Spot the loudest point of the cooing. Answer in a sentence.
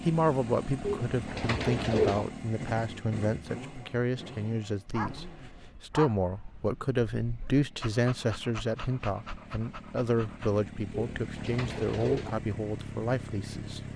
The loudest moment of the cooing is at 2 seconds.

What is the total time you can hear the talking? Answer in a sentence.
The talking can be heard for 14 seconds in total.